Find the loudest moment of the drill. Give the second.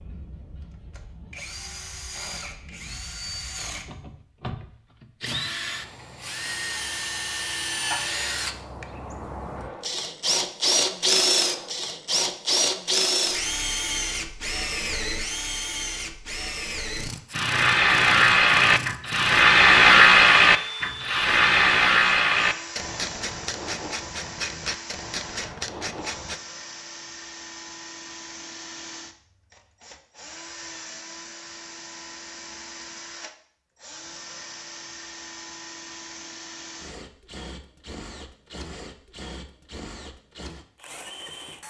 11 s.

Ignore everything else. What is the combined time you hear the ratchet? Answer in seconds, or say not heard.
9 s.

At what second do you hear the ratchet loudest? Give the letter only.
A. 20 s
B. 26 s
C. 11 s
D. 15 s
A.